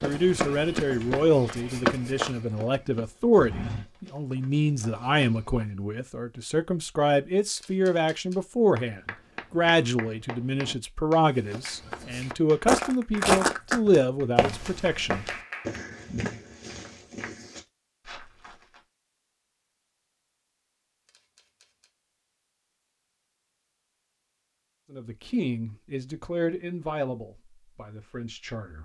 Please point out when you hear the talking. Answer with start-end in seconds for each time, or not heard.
0.0-15.3, 24.9-28.7.